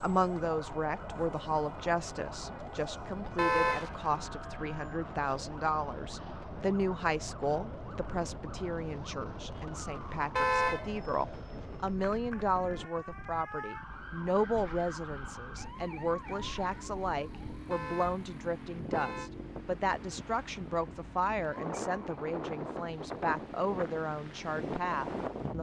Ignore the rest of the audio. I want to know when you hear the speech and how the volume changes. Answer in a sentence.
The speech can be heard from 0.0 to 25.5 s, at a steady volume.